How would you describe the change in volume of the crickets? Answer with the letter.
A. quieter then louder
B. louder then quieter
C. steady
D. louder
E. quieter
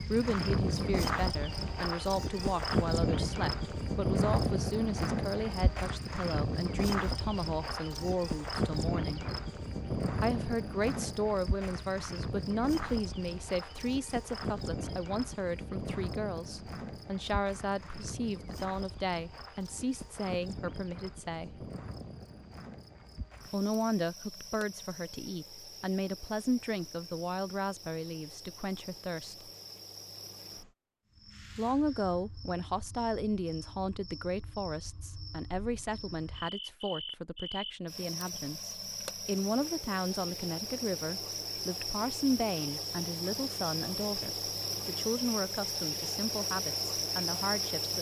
A.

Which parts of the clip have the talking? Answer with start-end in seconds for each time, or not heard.
0.1-9.2, 10.2-21.6, 23.5-29.5, 31.6-47.9.